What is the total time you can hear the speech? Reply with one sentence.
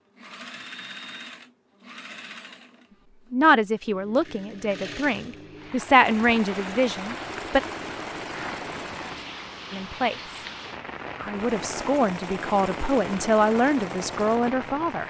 You can hear the speech for 9 seconds altogether.